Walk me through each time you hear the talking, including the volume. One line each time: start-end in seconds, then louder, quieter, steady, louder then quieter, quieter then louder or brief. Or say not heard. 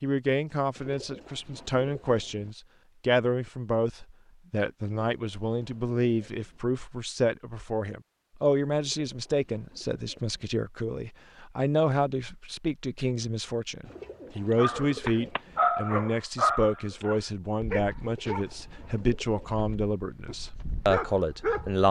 0.0-21.8 steady.